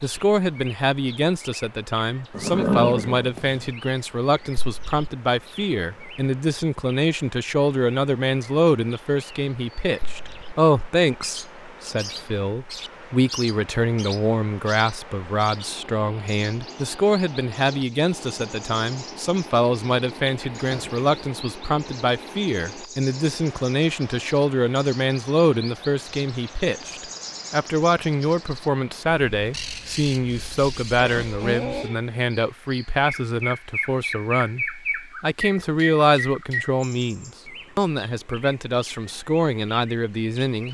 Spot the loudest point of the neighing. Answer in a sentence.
The loudest moment of the neighing is at 3 seconds.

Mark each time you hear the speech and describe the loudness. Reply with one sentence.
The speech can be heard from 0.0 to 40.6 s, at a steady volume.